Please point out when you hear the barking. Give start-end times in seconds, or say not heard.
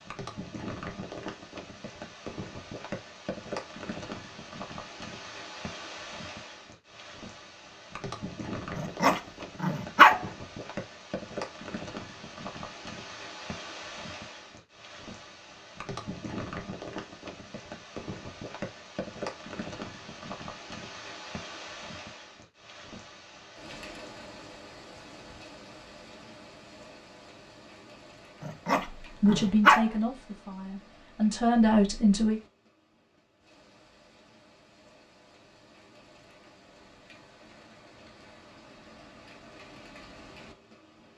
8.8-10.2, 28.4-29.9.